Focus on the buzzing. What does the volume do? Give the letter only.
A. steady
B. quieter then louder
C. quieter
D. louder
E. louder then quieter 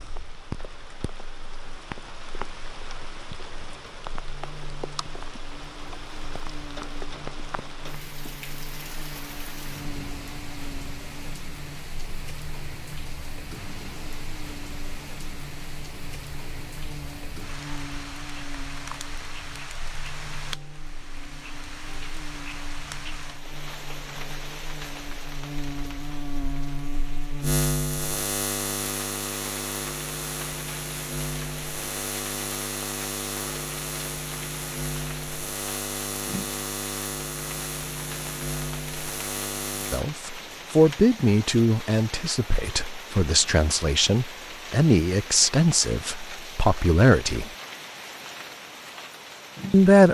D.